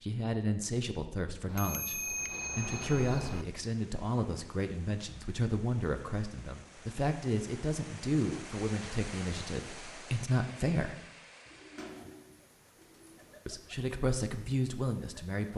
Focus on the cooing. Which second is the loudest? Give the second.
12 s.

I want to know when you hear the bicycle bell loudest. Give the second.
2 s.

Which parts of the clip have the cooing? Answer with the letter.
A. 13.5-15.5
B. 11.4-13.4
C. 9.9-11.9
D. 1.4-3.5
B.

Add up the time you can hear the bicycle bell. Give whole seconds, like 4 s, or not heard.
2 s.